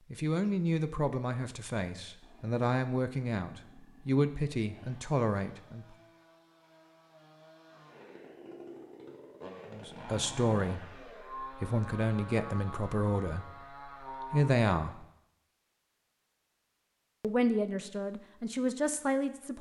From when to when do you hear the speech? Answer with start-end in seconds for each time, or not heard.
0.1-6.0, 9.7-15.1, 17.2-19.5.